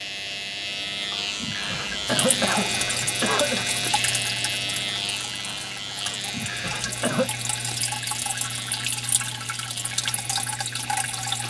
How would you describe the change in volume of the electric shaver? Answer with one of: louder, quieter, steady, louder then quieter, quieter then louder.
quieter.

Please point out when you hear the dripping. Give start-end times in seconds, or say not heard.
2.0-11.4.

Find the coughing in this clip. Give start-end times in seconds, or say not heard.
1.1-3.6, 6.0-7.3.